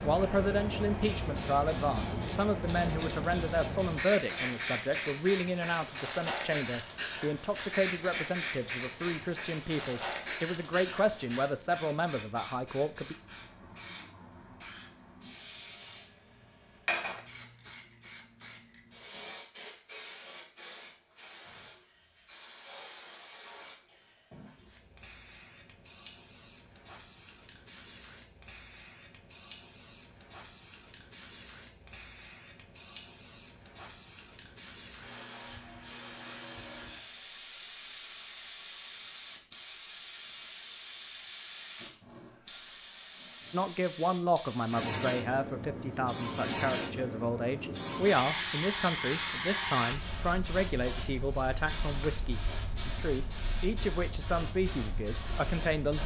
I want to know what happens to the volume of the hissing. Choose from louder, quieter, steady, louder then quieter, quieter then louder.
quieter then louder.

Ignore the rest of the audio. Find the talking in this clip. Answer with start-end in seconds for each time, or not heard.
0.0-13.2, 43.5-56.0.